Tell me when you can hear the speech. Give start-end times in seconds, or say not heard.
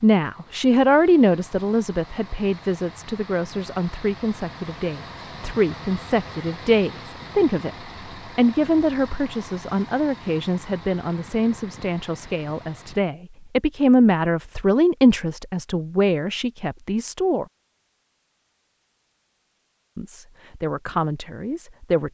0.0-17.4, 19.9-22.0.